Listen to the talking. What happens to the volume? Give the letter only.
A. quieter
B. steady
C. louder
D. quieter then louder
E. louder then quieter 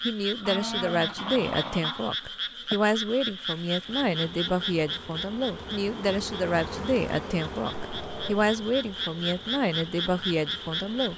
B.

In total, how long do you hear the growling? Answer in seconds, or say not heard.
2 s.